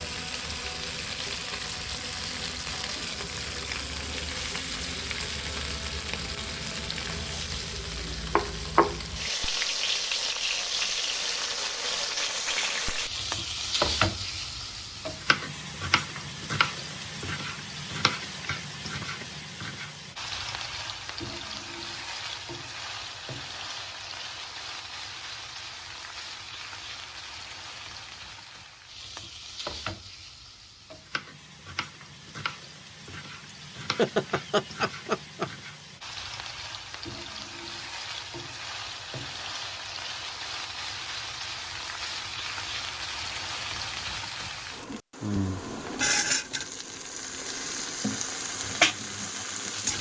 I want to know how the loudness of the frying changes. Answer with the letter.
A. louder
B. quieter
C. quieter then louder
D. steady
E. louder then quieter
C.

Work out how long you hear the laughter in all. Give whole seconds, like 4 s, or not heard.
2 s.